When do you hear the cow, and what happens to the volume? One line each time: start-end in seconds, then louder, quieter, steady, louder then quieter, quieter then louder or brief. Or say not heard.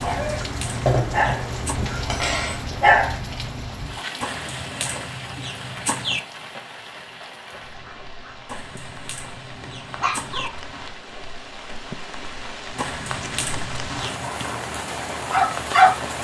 not heard.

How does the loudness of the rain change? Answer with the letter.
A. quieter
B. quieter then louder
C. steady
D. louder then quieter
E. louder
B.